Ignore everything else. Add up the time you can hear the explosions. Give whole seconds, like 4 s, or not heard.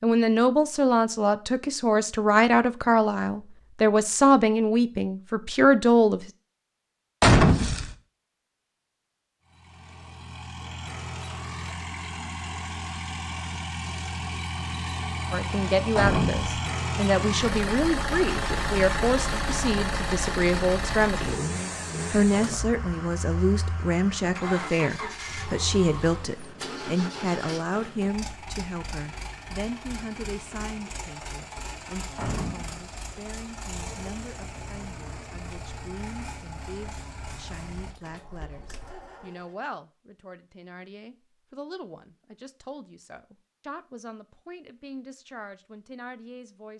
2 s.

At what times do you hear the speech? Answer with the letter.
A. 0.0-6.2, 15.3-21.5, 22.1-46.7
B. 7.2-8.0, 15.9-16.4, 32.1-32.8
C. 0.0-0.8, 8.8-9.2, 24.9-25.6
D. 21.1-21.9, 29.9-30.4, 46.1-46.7
A.